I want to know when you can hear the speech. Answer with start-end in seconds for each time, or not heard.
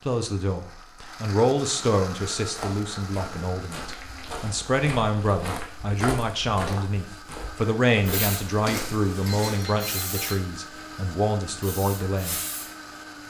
0.1-12.4.